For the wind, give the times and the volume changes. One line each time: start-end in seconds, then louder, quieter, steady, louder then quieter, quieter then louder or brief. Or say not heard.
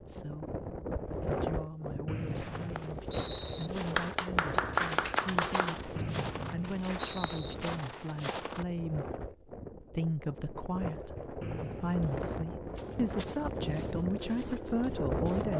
0.0-15.5 quieter then louder.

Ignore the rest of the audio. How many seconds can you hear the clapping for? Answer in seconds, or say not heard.
2 s.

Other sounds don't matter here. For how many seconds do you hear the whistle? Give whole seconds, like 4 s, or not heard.
4 s.